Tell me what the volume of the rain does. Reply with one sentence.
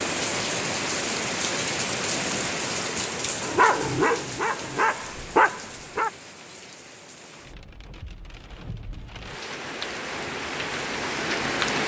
The volume of the rain goes down, then up.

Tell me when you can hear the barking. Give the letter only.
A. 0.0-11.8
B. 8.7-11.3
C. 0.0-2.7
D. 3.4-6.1
D.